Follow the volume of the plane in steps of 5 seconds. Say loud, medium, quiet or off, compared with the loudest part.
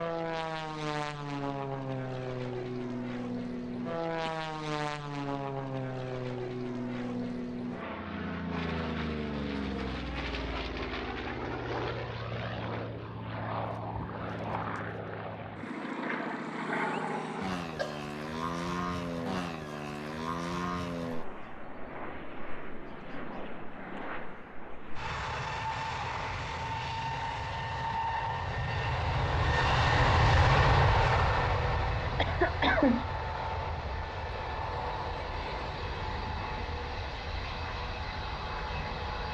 medium, medium, medium, medium, medium, loud, loud, medium.